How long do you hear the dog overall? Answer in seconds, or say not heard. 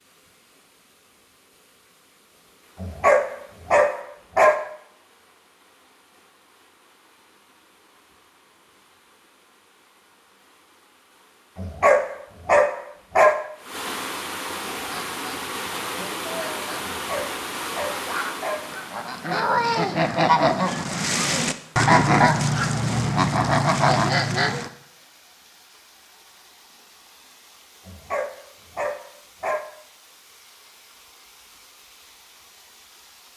7 s.